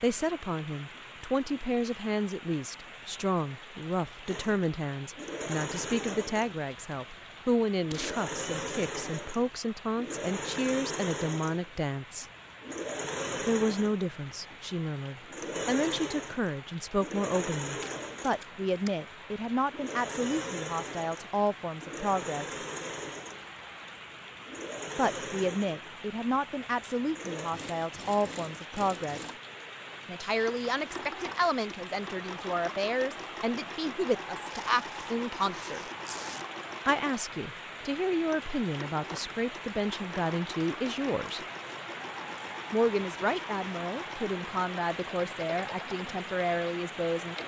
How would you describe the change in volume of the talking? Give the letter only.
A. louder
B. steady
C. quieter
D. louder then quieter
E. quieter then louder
B.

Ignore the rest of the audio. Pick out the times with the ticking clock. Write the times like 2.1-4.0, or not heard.
not heard.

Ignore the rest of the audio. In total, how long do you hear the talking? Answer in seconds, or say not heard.
41 s.